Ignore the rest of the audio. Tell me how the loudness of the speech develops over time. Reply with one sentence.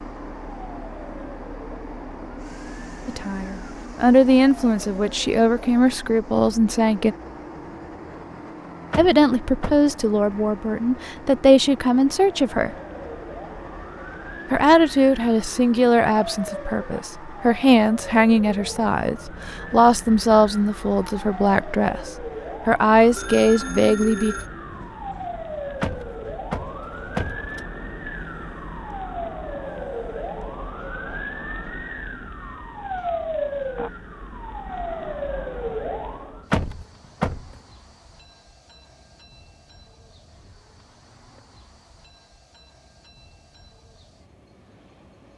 The loudness of the speech stays about the same.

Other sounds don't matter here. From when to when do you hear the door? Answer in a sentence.
You can hear the door from 8.9 to 9.9 s, from 25.8 to 27.6 s and from 36.5 to 37.6 s.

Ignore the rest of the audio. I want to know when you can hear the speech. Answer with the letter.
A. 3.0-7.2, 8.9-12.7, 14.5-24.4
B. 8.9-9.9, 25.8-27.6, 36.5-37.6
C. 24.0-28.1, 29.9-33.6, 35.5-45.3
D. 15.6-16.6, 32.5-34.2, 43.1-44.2
A.